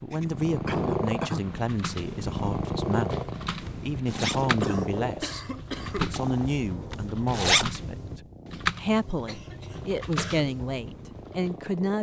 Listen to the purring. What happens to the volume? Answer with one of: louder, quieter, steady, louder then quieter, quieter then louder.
quieter.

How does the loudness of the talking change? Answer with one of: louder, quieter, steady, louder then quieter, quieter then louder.
steady.